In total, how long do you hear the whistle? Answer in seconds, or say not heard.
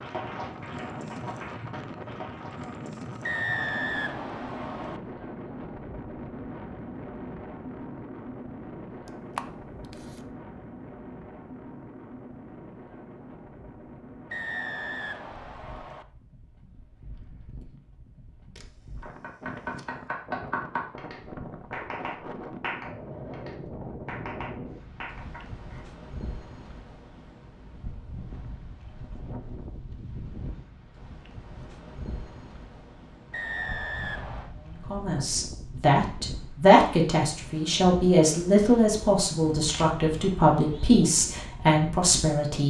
5 s.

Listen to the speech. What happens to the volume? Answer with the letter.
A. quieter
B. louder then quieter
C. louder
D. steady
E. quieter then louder
D.